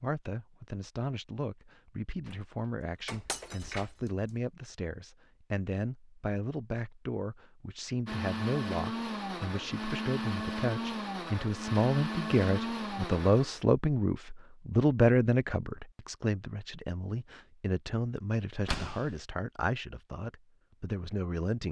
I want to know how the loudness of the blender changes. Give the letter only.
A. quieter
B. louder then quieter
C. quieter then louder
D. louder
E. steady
E.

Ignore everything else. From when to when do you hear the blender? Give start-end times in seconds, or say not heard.
8.1-13.6.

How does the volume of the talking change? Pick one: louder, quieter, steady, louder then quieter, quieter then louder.
louder then quieter.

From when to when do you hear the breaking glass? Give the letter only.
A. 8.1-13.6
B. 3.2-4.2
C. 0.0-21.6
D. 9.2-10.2
B.